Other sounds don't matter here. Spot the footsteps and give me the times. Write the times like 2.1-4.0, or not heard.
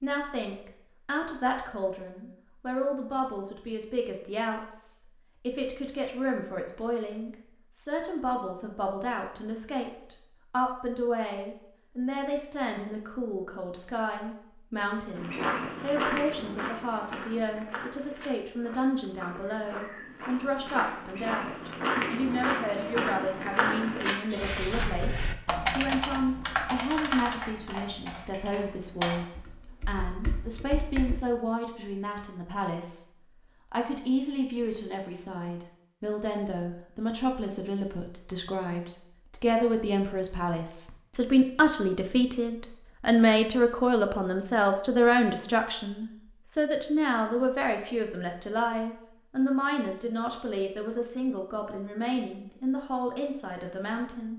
15.2-24.9.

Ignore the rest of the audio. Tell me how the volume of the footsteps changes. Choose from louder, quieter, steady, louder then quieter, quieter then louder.
quieter then louder.